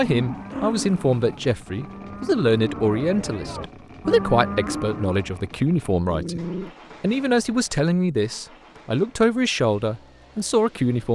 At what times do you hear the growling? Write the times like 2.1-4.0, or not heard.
0.5-1.6, 6.1-6.8.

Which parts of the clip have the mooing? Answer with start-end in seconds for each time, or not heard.
0.0-5.4.